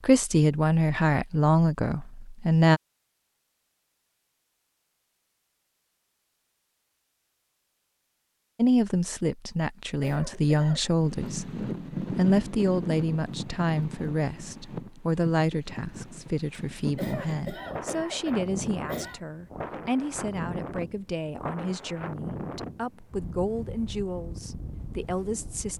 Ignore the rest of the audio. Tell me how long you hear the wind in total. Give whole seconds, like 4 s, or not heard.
15 s.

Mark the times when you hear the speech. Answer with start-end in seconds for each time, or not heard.
0.0-2.8, 8.6-25.7.